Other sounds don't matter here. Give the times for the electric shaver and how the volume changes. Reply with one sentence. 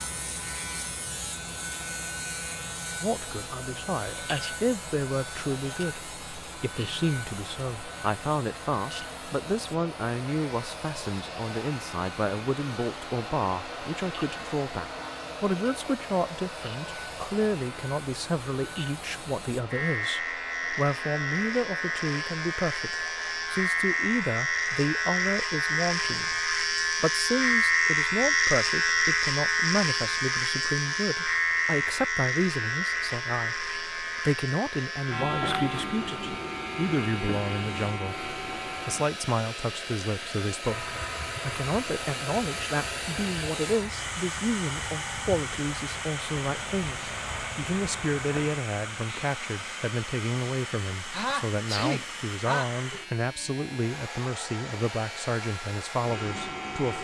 You can hear the electric shaver from 0.0 to 56.9 s, getting louder then quieter.